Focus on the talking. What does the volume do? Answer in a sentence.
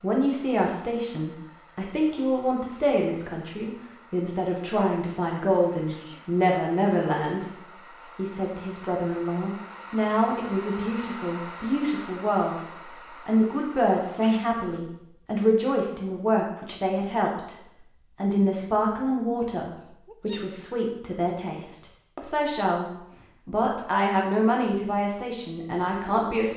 The volume of the talking stays about the same.